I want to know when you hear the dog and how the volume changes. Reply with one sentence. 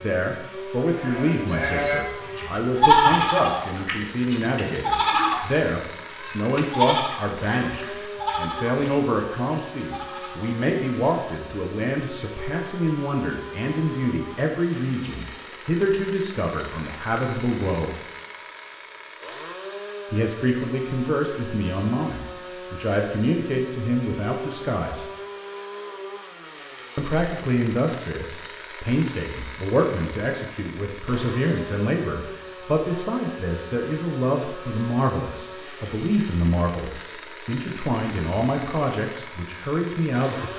The dog can't be heard in this clip.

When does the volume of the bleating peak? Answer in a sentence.
The loudest moment of the bleating is at 3 seconds.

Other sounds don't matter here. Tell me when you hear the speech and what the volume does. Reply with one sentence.
The speech can be heard from 0.0 to 17.9 s, at a steady volume; from 20.1 to 25.1 s, at a steady volume; and from 26.9 to 40.5 s, at a steady volume.